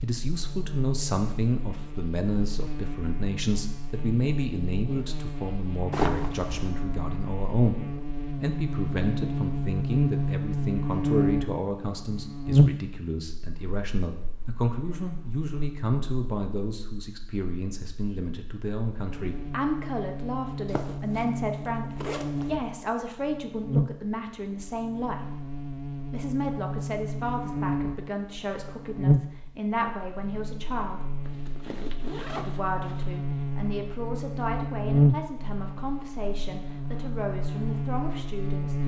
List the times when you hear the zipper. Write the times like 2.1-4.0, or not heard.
5.9-6.7, 20.6-22.5, 31.2-33.0.